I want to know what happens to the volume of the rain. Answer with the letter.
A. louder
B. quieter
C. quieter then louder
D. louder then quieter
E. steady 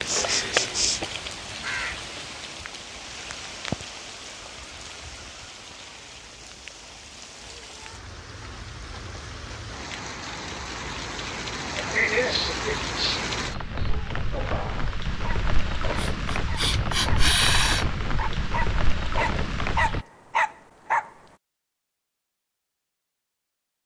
C.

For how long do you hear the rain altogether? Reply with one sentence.
You can hear the rain for 20 seconds altogether.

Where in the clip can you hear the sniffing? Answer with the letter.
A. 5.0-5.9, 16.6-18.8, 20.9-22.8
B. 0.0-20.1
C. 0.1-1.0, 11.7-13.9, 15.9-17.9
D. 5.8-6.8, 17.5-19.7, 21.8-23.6
C.